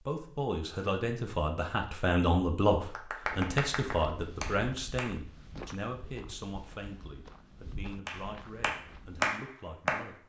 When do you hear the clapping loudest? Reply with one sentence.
The loudest moment of the clapping is at 9 seconds.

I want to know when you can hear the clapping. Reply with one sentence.
You can hear the clapping from 3.0 to 5.1 s and from 8.1 to 10.1 s.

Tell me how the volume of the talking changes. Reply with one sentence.
The volume of the talking goes down.